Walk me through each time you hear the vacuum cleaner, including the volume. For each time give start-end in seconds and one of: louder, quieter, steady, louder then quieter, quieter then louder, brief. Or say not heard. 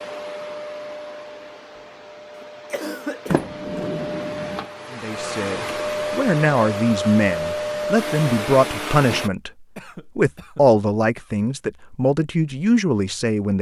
0.0-9.3 louder.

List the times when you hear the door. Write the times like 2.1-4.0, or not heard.
3.3-4.7.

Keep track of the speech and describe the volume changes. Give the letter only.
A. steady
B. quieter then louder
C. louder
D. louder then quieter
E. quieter
A.